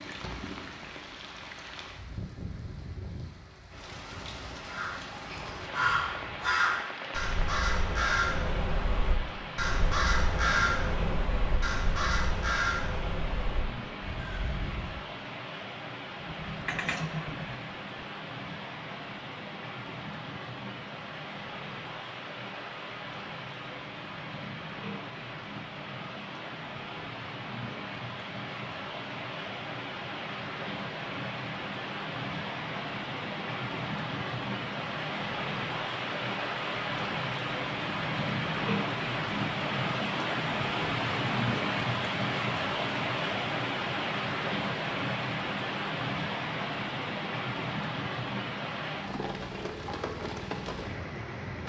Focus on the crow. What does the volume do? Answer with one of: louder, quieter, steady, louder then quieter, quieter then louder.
quieter.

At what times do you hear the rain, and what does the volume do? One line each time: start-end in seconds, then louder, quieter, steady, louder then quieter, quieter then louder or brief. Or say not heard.
0.0-51.6 louder.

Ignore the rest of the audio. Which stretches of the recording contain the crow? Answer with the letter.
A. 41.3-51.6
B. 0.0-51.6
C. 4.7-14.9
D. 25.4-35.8
C.